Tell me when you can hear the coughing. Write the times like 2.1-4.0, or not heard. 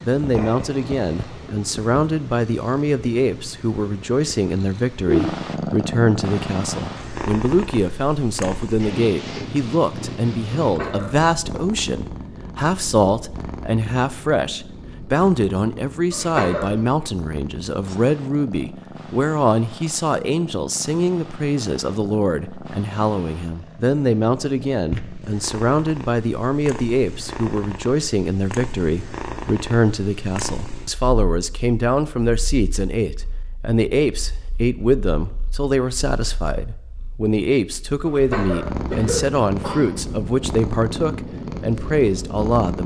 10.6-11.3, 16.1-16.9, 38.0-39.9.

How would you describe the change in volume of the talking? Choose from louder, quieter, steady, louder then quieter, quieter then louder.
steady.